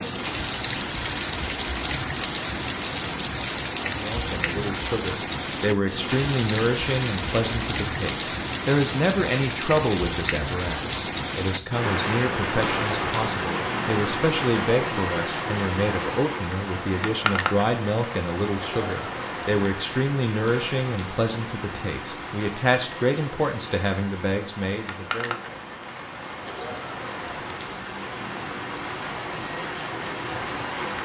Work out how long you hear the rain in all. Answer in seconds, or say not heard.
31 s.